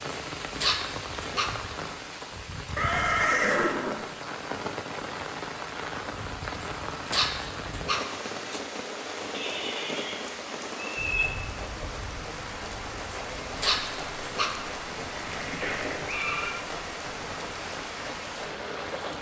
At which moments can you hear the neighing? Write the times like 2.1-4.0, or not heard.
2.8-4.0, 9.3-11.2, 15.1-16.6.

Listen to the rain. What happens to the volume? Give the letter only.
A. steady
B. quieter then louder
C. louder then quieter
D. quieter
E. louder
A.